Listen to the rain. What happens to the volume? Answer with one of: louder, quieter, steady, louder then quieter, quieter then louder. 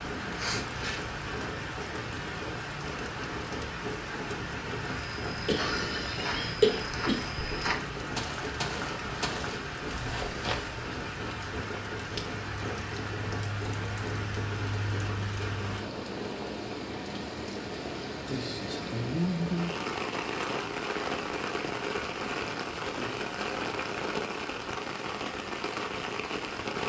steady.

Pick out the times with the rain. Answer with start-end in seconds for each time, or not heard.
0.0-26.8.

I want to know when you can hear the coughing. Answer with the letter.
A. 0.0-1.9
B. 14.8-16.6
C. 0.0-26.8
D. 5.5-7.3
D.